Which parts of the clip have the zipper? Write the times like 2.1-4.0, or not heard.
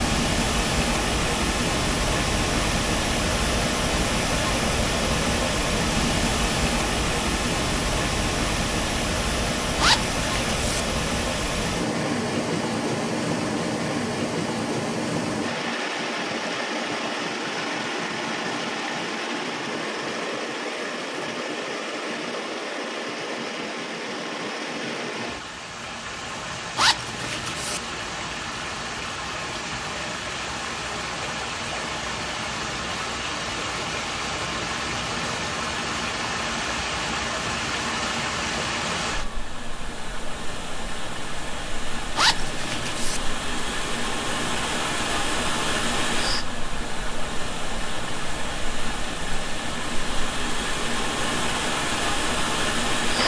9.8-10.8, 26.8-27.8, 42.1-43.2.